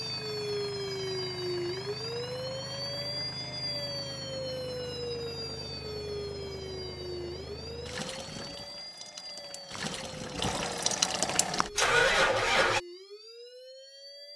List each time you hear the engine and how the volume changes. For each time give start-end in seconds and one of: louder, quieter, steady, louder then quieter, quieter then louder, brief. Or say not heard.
0.0-12.8 louder.